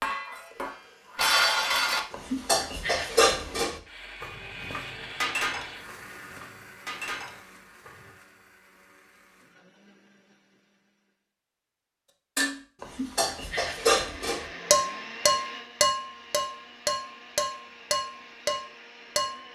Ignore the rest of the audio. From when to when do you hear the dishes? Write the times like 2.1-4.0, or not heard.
0.0-8.1, 12.3-19.4.